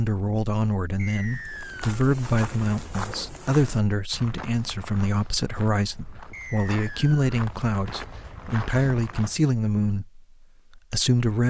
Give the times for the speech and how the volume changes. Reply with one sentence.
The speech can be heard from 0.0 to 11.4 s, at a steady volume.